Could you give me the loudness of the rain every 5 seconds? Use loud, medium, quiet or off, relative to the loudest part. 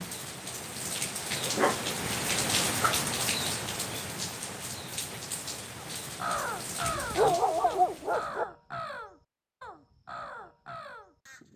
loud, medium, off.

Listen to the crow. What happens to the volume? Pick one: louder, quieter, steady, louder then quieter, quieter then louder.
quieter.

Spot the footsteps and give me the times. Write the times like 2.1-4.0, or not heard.
not heard.